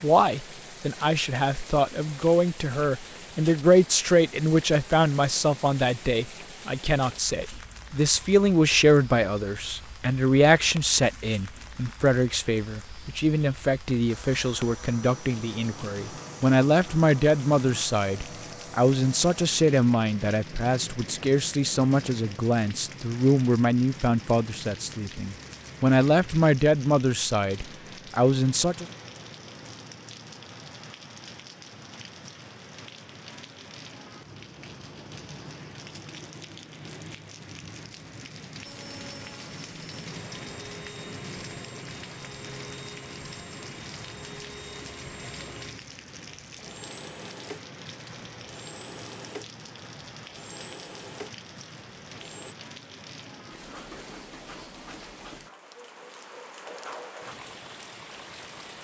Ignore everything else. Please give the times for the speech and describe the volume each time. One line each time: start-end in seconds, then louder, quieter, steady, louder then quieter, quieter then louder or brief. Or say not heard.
0.0-28.9 steady.